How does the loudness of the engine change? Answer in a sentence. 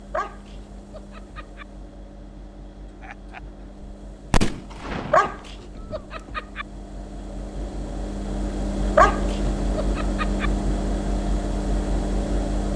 The loudness of the engine goes up.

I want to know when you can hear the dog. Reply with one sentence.
The dog can be heard from 0.1 to 1.6 s, from 5.1 to 6.7 s and from 8.9 to 10.5 s.